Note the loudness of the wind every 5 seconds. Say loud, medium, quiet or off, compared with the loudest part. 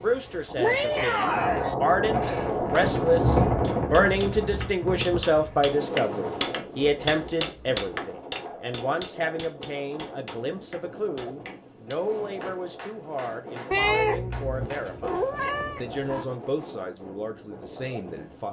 loud, medium, quiet, quiet.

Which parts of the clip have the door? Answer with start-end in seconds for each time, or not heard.
not heard.